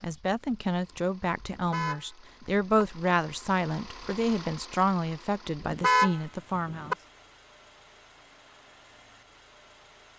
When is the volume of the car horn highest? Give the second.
6 s.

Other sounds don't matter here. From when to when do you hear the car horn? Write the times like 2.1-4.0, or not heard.
1.5-2.8, 5.7-7.0.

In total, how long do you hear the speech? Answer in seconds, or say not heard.
7 s.